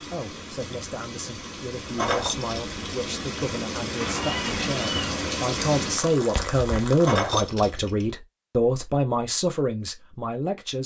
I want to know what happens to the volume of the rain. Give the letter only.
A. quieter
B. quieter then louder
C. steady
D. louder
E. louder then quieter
D.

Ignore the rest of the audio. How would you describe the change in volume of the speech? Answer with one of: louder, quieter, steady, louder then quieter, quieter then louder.
louder.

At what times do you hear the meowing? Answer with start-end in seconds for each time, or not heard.
4.0-5.2.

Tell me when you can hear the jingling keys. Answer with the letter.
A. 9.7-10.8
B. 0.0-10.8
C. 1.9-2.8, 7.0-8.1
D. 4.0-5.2
C.